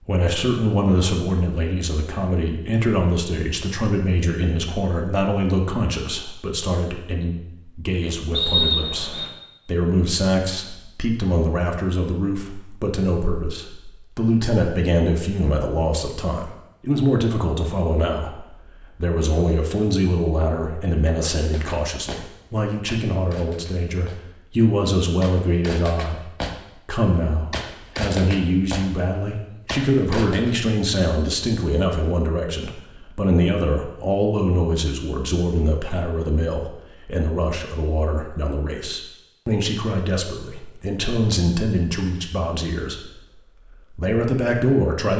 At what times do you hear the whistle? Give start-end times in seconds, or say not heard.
8.3-9.3.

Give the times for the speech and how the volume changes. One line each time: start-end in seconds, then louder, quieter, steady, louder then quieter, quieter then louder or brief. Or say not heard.
0.1-45.1 steady.